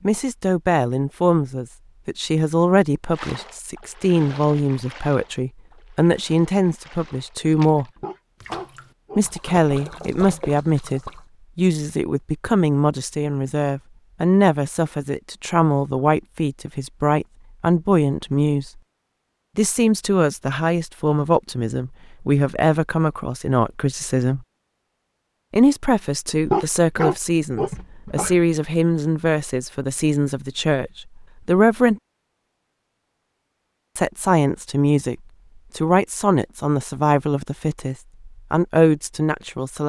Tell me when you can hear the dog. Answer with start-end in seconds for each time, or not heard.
8.0-9.9, 26.4-28.4.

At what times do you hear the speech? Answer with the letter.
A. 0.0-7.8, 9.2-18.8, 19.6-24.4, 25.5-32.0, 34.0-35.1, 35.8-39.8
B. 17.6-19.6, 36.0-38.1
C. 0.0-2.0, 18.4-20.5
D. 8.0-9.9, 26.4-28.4
A.